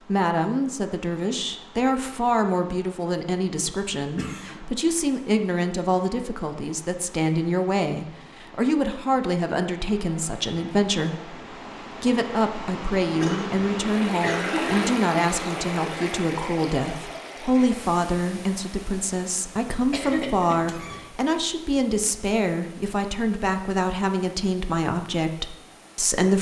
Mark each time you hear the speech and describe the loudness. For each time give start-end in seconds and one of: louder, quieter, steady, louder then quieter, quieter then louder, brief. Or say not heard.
0.1-26.3 steady.